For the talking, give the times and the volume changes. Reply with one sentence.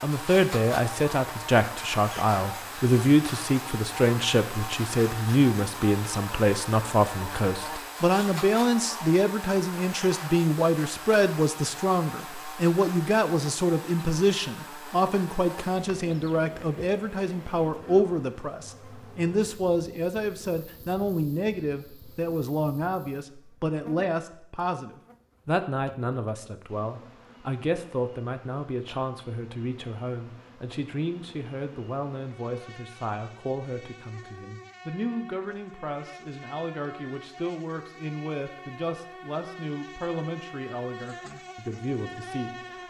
The talking can be heard from 0.0 to 42.5 s, getting quieter.